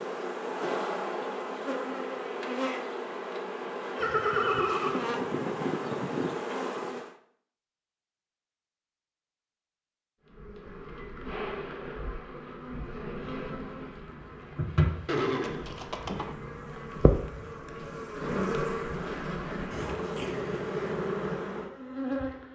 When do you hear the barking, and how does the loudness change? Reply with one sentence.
You can't hear the barking here.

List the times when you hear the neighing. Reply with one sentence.
You can hear the neighing from 4.0 to 5.0 s and from 15.1 to 16.4 s.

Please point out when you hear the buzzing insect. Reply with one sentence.
You can hear the buzzing insect from 0.0 to 7.2 s and from 10.2 to 22.5 s.